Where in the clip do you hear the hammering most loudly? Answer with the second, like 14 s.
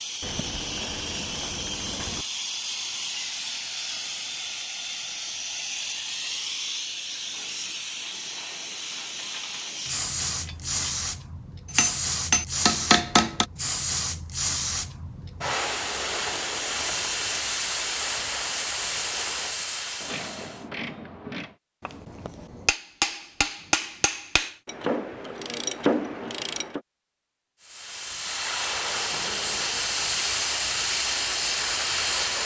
13 s.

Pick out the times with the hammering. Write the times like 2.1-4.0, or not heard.
11.7-13.4, 21.9-24.6.